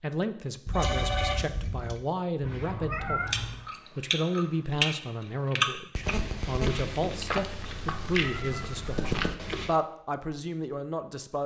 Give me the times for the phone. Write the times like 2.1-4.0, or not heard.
0.7-2.0, 6.0-6.8.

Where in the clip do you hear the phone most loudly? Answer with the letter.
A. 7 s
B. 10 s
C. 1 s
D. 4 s
C.